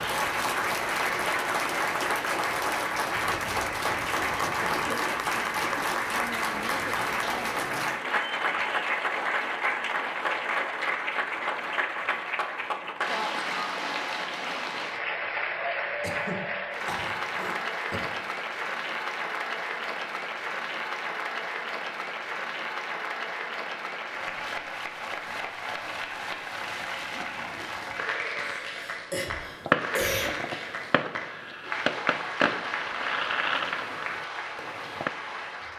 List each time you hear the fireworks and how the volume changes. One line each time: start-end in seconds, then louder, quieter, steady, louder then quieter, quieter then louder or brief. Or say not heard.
29.4-35.1 louder then quieter.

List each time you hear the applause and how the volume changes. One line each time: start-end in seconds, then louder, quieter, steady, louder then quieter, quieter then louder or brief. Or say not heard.
0.0-35.7 quieter.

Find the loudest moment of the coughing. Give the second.
30 s.